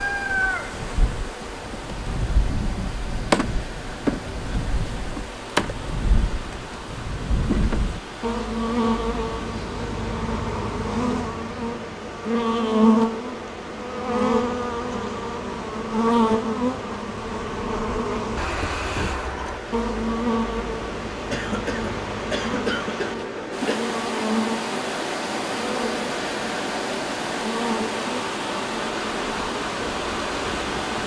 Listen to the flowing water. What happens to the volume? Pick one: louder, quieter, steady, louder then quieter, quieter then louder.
louder.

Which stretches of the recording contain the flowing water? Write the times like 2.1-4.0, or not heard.
0.0-31.0.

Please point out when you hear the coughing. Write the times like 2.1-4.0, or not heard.
21.3-23.9.